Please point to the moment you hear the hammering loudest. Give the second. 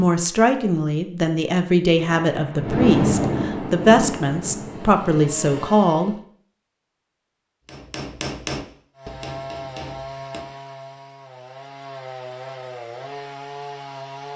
8 s.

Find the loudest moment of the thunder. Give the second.
3 s.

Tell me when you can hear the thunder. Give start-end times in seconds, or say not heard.
1.9-5.6.